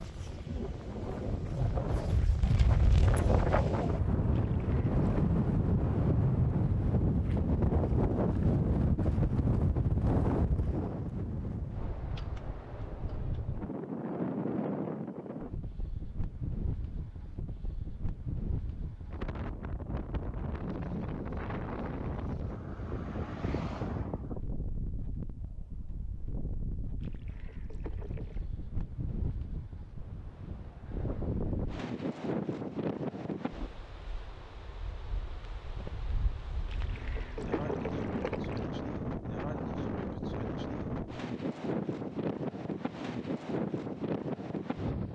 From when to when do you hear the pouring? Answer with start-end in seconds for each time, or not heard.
4.3-5.3, 27.0-28.5, 36.6-38.7.